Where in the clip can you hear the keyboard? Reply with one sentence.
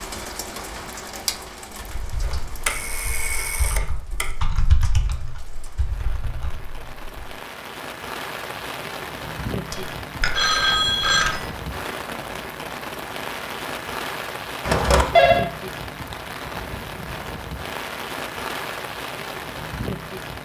You can hear the keyboard from 1.9 to 7.0 s.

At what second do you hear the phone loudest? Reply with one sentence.
The volume of the phone peaks at 15 seconds.